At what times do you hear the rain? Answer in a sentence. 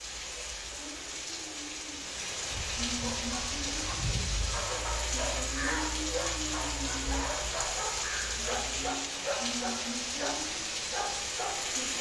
You can hear the rain from 0.0 to 11.9 s.